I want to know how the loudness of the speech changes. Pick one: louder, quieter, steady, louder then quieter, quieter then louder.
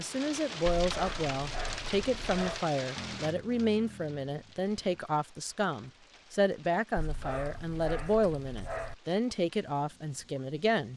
steady.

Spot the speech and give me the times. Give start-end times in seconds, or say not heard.
0.0-10.9.